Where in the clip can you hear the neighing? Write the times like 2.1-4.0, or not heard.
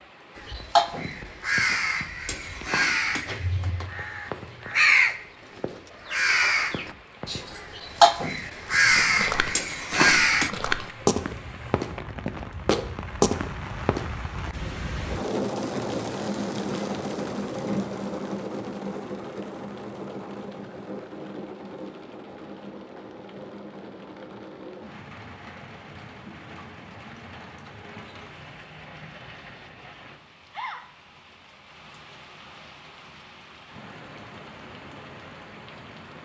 not heard.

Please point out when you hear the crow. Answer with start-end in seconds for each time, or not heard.
0.3-10.5.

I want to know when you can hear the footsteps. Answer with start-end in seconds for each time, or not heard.
8.9-14.1.